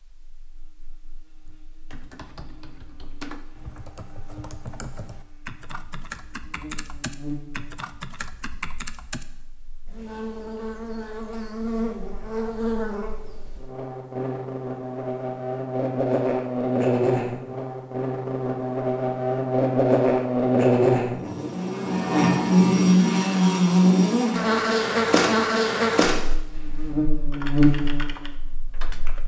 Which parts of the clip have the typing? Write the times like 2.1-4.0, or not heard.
1.4-9.2, 26.5-29.2.